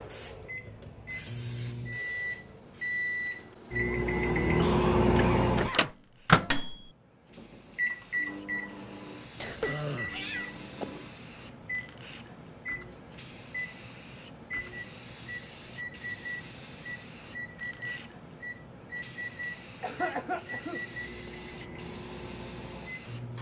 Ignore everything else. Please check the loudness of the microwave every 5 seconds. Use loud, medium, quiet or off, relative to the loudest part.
loud, loud, quiet, quiet, quiet.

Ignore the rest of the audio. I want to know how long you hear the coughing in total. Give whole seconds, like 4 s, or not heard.
4 s.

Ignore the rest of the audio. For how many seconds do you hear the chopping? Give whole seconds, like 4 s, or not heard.
not heard.